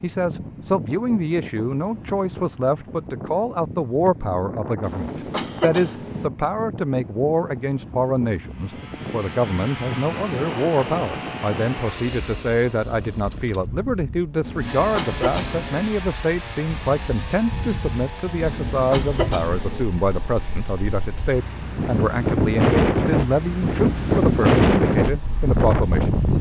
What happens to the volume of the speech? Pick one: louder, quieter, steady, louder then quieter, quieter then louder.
steady.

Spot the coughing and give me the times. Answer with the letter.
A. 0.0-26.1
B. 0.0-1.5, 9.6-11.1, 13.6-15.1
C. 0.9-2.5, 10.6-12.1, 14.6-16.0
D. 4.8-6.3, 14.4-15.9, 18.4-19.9
D.